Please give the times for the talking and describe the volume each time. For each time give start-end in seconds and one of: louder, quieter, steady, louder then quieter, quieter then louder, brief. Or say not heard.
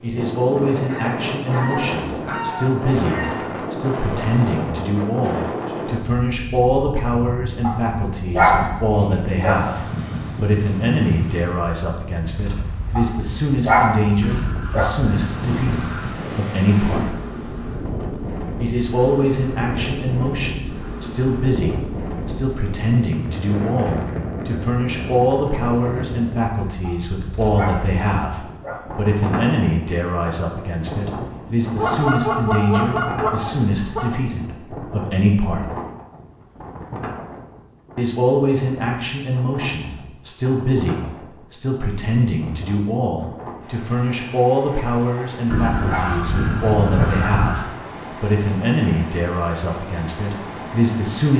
0.0-17.1 steady
18.6-35.6 steady
38.0-51.3 steady.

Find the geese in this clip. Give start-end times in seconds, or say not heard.
0.8-3.6, 14.2-16.2, 31.8-34.1, 45.5-47.6.